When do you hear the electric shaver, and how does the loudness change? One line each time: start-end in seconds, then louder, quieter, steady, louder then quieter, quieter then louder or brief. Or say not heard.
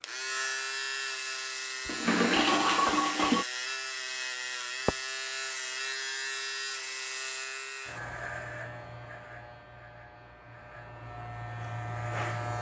0.0-12.5 quieter.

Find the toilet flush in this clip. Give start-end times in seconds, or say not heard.
1.9-3.5.